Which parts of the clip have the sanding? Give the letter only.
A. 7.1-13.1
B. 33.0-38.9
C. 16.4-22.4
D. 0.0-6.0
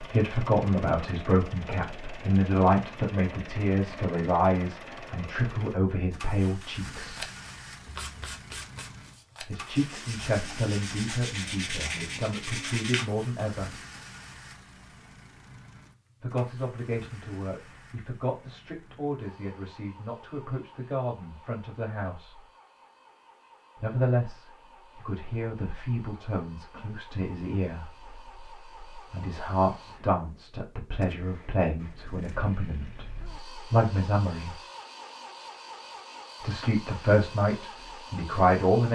A.